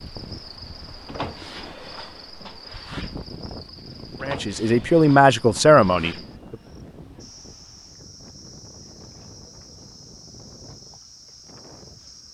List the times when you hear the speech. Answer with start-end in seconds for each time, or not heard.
4.2-6.5.